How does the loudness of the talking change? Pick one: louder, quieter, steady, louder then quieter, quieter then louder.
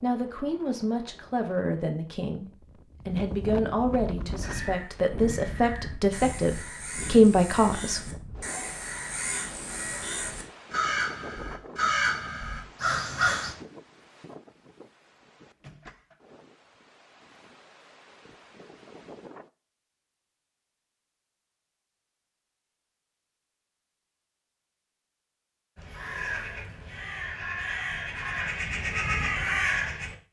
louder.